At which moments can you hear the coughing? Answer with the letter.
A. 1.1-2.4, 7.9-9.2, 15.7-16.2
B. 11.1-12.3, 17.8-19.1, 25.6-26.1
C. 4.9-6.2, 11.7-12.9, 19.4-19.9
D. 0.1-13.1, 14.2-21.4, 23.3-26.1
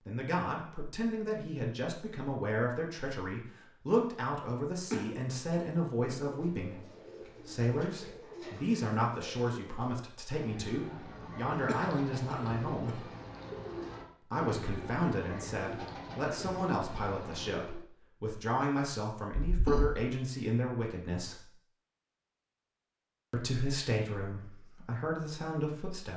C.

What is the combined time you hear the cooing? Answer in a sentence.
The cooing can be heard for 12 seconds in total.